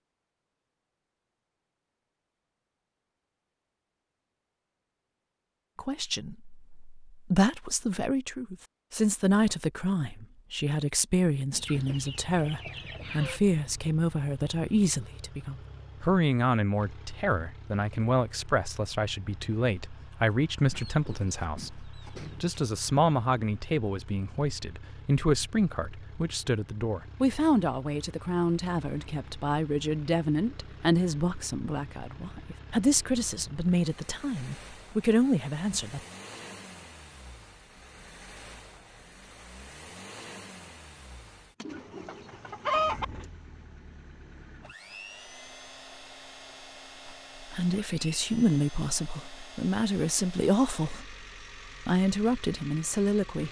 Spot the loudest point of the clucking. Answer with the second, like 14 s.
43 s.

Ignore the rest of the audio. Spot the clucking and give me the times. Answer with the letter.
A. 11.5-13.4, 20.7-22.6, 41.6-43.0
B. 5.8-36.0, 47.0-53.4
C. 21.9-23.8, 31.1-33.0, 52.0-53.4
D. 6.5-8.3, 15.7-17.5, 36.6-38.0
A.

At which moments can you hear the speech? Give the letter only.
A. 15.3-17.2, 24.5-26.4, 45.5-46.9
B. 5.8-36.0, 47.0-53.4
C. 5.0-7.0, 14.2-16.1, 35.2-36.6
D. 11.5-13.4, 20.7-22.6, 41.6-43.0
B.